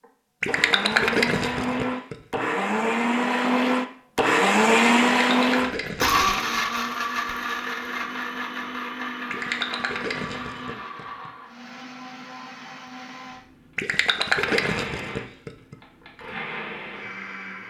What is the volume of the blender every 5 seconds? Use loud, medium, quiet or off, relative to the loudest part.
loud, loud, quiet, quiet.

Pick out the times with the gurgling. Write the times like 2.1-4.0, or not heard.
0.4-2.4, 5.2-6.4, 9.3-11.3, 13.8-15.8.